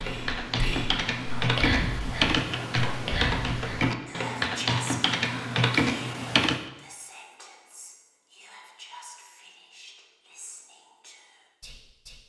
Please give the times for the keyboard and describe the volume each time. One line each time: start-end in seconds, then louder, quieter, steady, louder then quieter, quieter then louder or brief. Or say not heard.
0.0-6.7 steady.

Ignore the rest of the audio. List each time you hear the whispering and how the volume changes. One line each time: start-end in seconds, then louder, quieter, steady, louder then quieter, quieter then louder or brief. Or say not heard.
0.0-12.2 quieter.